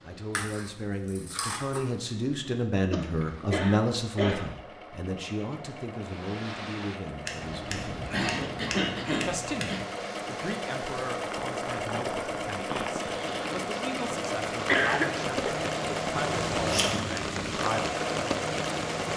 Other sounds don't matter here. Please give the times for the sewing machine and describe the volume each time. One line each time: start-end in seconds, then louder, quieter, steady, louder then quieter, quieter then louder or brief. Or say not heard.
0.0-19.1 louder.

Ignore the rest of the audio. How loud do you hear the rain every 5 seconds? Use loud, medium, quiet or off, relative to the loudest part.
off, medium, medium, loud.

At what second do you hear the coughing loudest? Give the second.
15 s.